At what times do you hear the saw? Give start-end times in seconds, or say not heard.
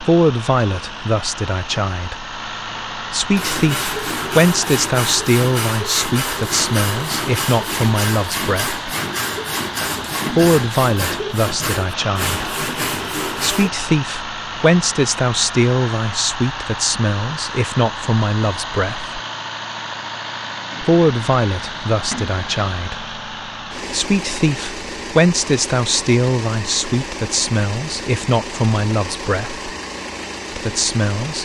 3.4-13.7.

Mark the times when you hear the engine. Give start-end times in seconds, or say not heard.
0.0-31.4.